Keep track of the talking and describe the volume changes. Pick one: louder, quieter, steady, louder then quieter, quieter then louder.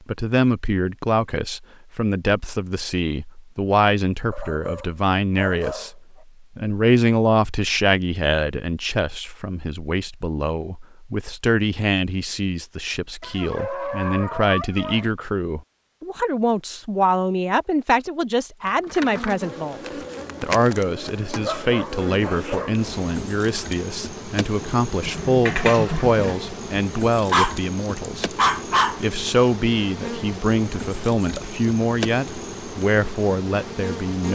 steady.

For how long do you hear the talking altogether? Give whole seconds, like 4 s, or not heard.
33 s.